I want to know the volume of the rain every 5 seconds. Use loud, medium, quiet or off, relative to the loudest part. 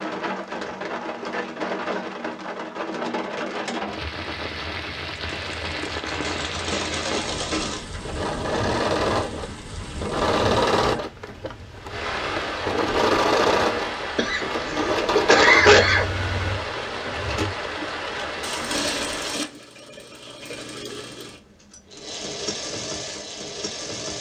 loud, loud, loud, loud, off.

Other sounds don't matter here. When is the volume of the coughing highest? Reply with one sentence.
The volume of the coughing peaks at 16 seconds.